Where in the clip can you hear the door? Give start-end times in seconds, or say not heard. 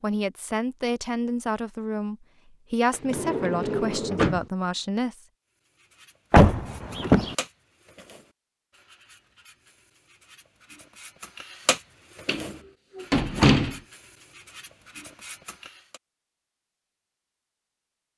2.9-4.5, 6.3-7.3, 12.2-13.8.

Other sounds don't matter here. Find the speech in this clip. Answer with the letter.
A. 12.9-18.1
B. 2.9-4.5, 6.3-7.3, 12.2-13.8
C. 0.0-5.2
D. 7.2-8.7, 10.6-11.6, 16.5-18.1
C.